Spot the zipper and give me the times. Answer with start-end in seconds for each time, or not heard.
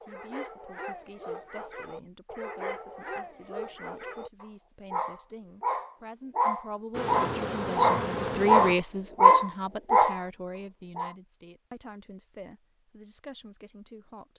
not heard.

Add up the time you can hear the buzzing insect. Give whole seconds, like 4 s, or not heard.
2 s.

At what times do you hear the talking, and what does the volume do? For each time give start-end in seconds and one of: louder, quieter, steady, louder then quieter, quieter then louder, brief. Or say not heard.
0.0-14.3 louder then quieter.